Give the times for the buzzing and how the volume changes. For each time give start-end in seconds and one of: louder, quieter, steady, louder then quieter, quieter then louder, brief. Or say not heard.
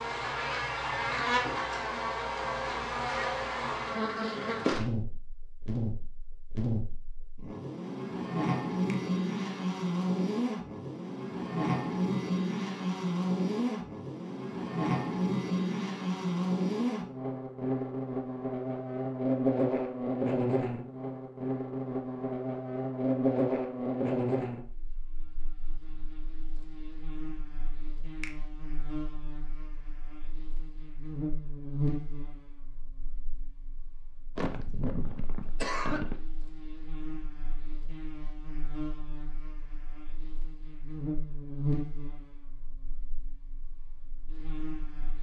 0.0-45.1 quieter.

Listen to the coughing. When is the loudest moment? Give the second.
36 s.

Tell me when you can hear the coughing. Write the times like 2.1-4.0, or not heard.
34.4-36.1.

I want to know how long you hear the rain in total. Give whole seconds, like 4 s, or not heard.
not heard.